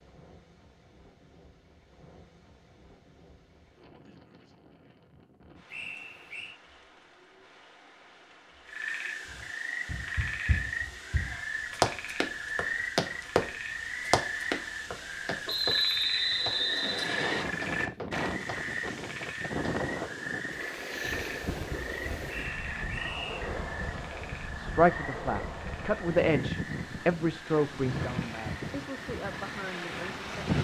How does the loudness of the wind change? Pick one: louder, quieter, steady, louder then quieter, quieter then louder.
louder.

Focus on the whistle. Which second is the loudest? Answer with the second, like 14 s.
16 s.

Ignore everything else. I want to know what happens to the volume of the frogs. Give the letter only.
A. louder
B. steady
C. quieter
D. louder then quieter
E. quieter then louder
C.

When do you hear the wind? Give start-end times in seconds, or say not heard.
0.0-30.5.